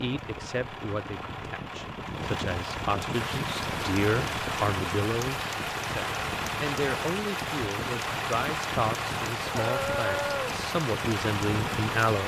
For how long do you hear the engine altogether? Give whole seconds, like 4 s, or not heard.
12 s.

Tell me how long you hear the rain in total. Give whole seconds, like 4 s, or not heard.
9 s.